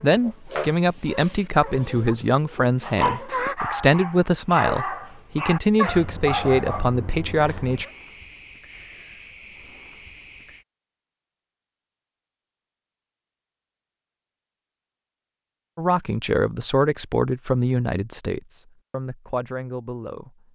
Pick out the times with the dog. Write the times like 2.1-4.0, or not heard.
0.3-7.9.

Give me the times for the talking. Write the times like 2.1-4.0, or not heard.
0.0-7.8, 15.8-20.4.